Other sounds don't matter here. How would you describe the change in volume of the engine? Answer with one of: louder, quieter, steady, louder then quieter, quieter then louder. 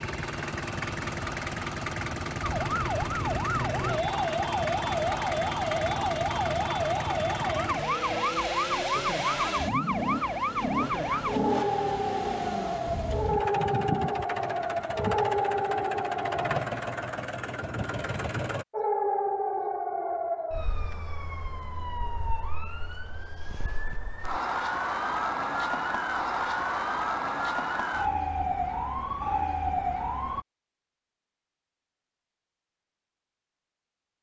steady.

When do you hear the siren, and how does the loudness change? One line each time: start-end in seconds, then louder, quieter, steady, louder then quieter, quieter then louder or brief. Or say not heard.
2.4-16.6 steady
18.7-30.4 quieter then louder.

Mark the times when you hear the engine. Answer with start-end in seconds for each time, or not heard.
0.0-18.6.